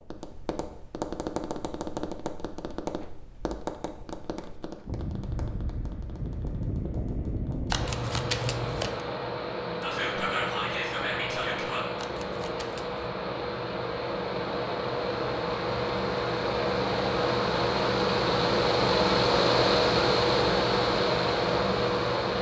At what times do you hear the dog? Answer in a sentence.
The dog can't be heard in this clip.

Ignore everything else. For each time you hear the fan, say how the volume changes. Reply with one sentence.
You can hear the fan from 4.8 to 22.3 s, getting louder.